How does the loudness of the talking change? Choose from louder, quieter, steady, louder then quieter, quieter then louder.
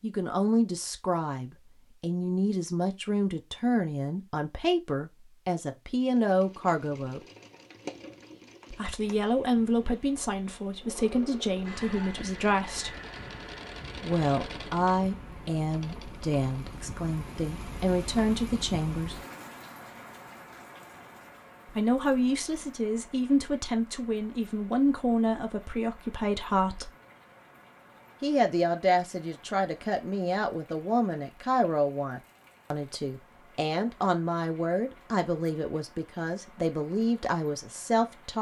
steady.